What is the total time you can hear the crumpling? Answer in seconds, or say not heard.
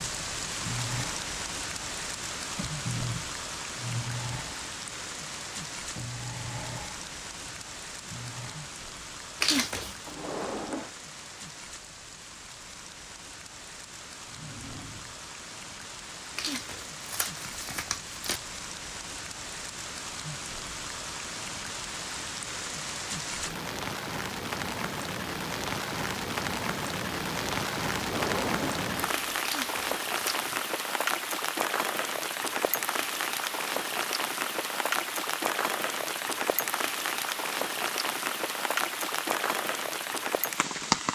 4 s.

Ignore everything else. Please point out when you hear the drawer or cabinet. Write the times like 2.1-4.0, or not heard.
10.1-10.9, 14.2-15.2, 27.9-29.4.